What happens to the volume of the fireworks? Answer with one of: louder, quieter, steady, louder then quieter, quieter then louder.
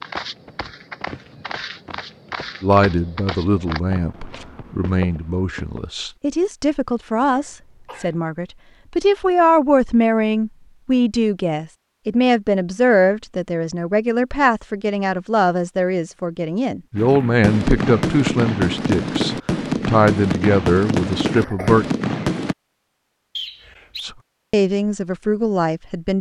steady.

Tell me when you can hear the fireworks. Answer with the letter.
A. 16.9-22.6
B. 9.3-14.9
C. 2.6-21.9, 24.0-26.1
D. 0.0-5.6
A.